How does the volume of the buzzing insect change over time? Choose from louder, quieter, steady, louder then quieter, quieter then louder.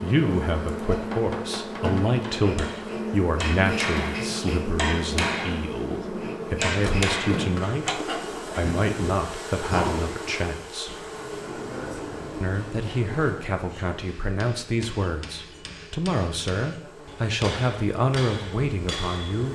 quieter.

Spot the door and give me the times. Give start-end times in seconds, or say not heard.
6.8-7.2, 10.8-13.5.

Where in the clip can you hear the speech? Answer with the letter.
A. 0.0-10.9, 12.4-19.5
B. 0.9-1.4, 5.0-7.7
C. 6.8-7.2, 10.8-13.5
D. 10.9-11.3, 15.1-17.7
A.